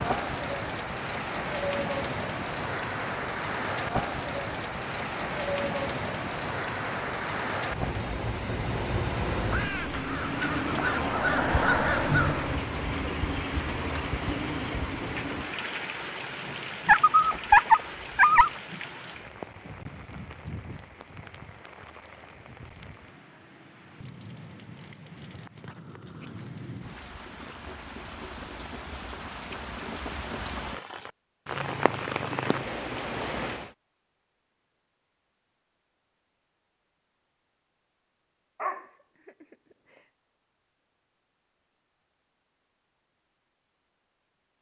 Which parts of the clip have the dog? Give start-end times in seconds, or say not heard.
16.9-18.5, 38.6-39.3.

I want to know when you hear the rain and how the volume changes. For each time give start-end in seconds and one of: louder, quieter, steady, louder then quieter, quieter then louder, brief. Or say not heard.
0.0-33.8 quieter then louder.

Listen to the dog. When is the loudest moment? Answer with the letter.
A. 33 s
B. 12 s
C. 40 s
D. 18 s
D.